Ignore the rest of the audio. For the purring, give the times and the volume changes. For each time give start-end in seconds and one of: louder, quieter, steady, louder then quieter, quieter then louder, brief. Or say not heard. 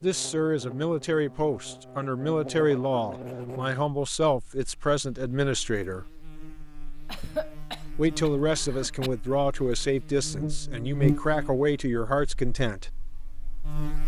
not heard.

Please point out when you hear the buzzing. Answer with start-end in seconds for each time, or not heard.
0.0-14.0.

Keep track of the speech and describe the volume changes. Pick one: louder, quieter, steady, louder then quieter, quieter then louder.
steady.